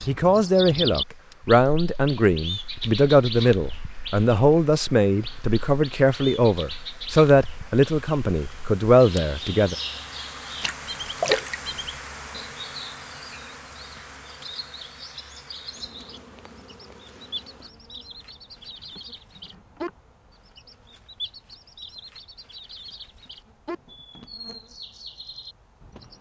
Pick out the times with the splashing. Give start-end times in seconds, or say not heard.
10.6-11.6.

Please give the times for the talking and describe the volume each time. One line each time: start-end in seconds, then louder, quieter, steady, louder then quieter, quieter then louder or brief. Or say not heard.
0.1-9.8 steady.